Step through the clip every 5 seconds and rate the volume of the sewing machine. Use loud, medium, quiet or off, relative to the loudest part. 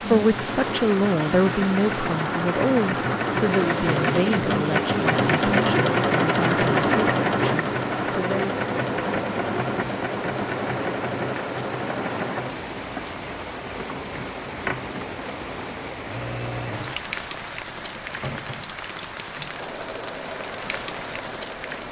loud, loud, medium, quiet, quiet.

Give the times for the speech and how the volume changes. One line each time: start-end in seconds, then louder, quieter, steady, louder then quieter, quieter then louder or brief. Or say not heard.
0.1-8.6 quieter.